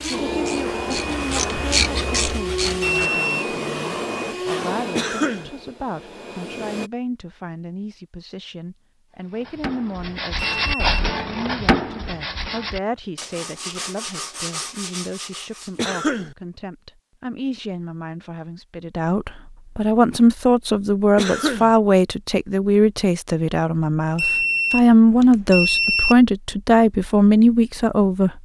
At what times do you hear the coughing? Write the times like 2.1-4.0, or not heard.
5.0-5.5, 15.8-16.4, 21.1-21.7.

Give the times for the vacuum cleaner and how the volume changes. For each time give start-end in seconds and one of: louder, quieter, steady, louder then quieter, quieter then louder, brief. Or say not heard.
0.0-6.9 quieter.